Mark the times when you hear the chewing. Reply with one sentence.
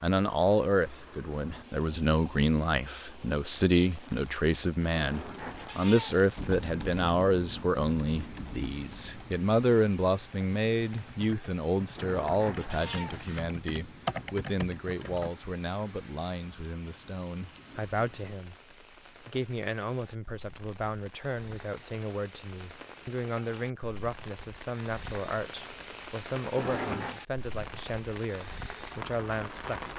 You can't hear the chewing here.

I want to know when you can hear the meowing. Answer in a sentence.
The meowing can be heard from 4.9 to 6.2 s, from 11.9 to 13.4 s and from 26.6 to 27.1 s.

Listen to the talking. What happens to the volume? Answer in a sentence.
The volume of the talking goes down.